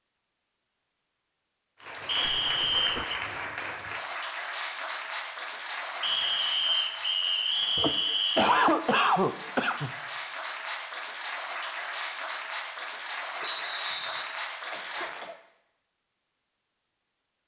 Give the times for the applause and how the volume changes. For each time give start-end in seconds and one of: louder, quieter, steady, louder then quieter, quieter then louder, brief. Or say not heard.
1.8-15.3 quieter then louder.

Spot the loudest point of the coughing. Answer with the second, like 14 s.
9 s.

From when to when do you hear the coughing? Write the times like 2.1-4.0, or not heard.
2.4-3.0, 7.8-9.9, 14.7-15.4.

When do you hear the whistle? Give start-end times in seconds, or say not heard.
2.0-3.1, 6.0-8.6, 13.4-14.2.